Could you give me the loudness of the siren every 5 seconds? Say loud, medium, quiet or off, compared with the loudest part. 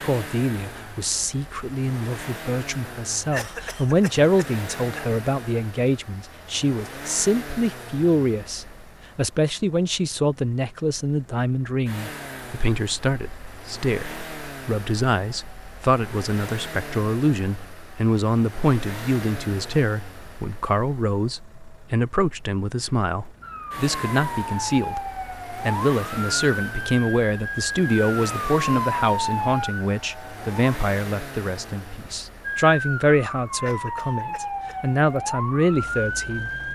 off, off, off, off, loud, loud, loud, loud.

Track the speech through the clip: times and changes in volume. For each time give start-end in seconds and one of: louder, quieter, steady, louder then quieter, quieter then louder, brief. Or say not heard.
0.0-36.5 steady.